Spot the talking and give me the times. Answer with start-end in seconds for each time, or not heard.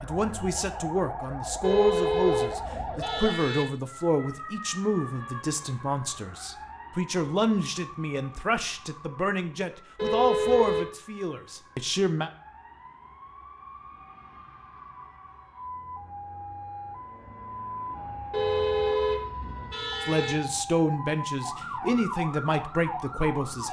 0.0-12.3, 20.0-23.6.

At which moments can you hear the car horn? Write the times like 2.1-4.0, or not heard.
1.6-3.6, 9.9-10.8, 18.3-20.4.